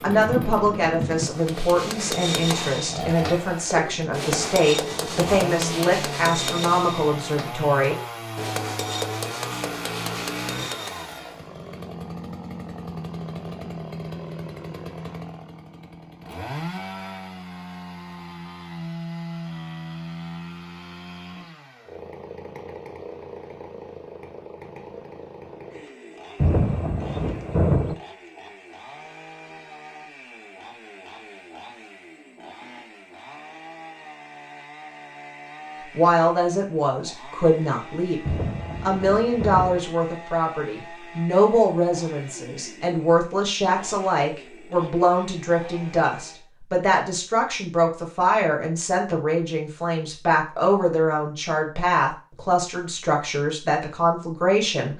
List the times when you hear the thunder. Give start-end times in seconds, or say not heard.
0.1-1.3, 26.4-27.9, 38.2-39.8.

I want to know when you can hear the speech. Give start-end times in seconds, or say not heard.
0.0-8.0, 35.9-54.9.